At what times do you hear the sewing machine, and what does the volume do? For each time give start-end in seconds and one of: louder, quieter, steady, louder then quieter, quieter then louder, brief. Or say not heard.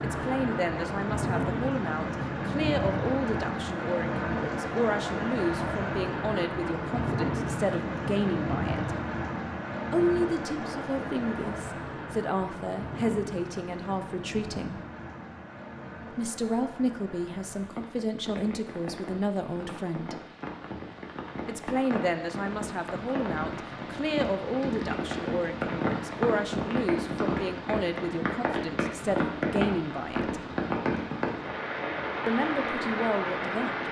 not heard.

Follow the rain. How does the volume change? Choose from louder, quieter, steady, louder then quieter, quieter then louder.
quieter then louder.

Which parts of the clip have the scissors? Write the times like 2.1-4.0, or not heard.
not heard.